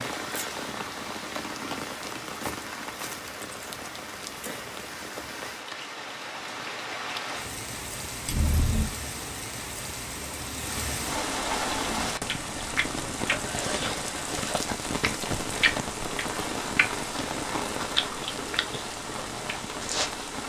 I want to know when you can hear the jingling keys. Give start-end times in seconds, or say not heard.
8.2-8.9.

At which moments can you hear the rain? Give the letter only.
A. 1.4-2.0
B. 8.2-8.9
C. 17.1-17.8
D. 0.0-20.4
D.